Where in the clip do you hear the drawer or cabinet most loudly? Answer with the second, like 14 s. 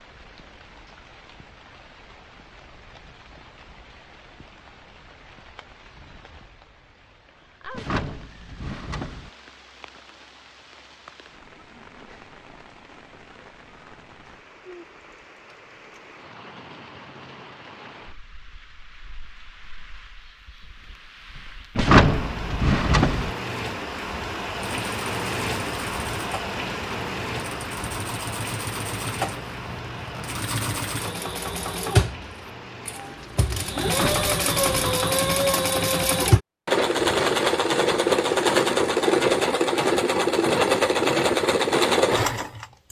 22 s.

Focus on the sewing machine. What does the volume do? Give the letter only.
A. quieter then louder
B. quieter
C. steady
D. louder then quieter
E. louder
E.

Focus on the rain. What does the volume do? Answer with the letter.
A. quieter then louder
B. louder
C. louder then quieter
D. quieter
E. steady
B.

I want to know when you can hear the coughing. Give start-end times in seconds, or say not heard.
not heard.